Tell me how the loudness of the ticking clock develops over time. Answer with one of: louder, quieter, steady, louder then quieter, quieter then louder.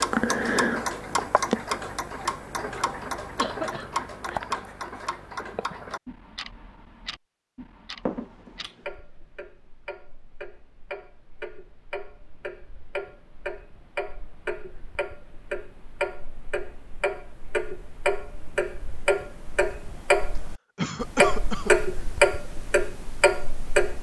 quieter then louder.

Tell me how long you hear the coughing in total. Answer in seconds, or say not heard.
3 s.